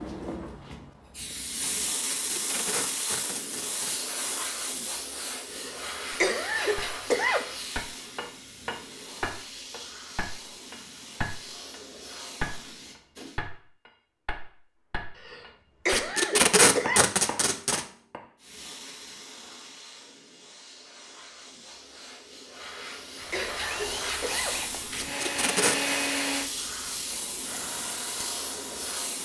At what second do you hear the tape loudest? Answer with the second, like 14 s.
17 s.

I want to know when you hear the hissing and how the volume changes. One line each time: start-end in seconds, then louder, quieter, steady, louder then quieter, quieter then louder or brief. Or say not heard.
0.0-13.4 quieter
18.4-29.2 louder.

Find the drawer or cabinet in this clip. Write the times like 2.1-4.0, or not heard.
not heard.